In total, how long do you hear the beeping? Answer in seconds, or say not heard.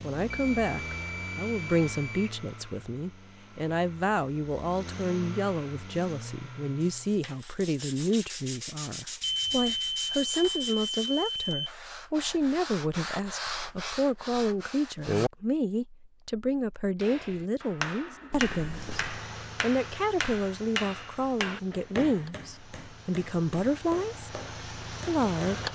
5 s.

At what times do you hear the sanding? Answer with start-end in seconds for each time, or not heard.
6.8-15.3.